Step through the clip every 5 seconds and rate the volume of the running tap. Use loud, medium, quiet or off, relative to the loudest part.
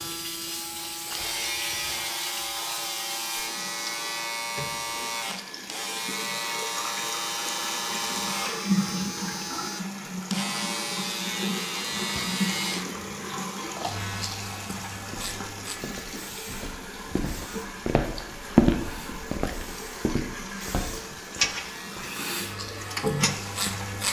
medium, loud, loud, medium, loud.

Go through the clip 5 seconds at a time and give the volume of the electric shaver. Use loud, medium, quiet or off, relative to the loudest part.
loud, loud, loud, medium, loud.